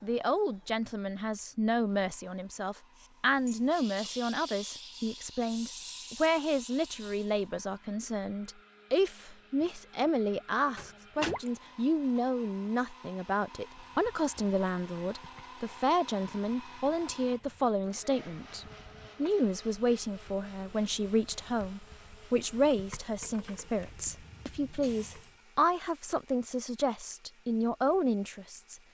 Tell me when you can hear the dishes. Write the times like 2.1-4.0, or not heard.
not heard.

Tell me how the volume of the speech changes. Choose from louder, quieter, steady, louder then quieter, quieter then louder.
steady.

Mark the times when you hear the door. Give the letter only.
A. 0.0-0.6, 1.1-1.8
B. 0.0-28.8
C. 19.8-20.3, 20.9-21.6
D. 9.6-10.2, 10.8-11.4
D.